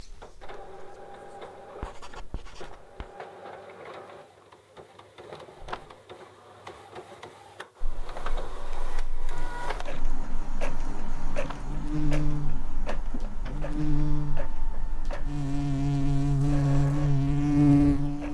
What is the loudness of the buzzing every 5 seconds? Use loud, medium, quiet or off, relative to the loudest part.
off, quiet, medium, loud.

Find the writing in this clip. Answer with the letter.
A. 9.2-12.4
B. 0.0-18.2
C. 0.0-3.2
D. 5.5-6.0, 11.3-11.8
C.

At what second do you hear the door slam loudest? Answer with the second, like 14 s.
6 s.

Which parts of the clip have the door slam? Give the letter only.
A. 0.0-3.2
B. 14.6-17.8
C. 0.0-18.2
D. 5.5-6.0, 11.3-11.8
D.